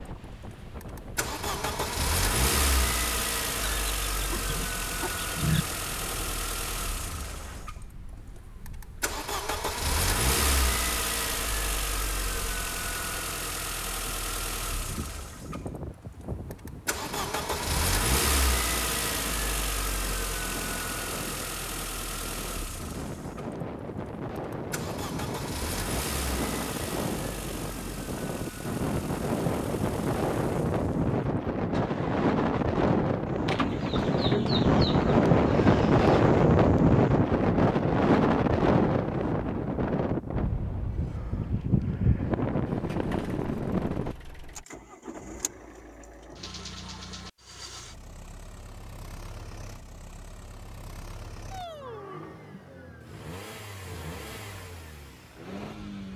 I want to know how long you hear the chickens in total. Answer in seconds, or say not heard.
5 s.